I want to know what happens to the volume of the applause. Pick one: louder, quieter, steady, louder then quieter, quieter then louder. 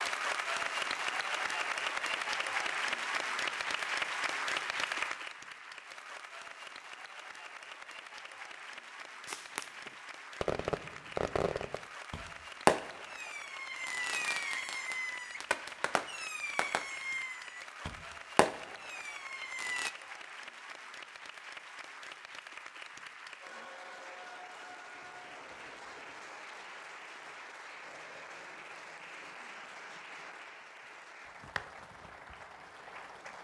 quieter.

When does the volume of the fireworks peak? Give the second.
13 s.